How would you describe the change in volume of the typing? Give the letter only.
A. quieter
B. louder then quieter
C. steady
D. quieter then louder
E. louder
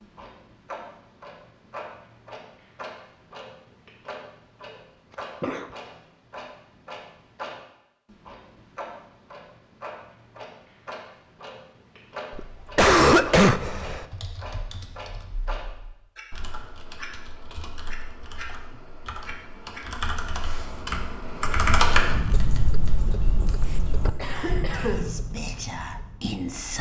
B.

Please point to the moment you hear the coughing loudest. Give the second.
13 s.